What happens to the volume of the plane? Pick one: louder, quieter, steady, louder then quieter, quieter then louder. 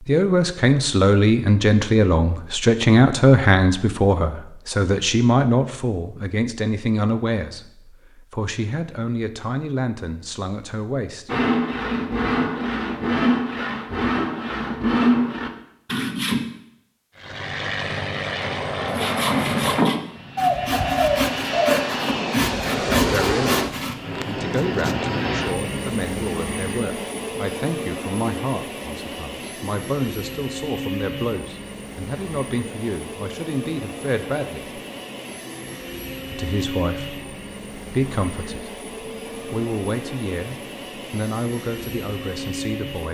quieter.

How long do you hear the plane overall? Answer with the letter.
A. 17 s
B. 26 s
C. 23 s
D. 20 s
B.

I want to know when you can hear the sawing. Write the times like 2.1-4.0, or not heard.
11.2-16.4, 18.9-24.0.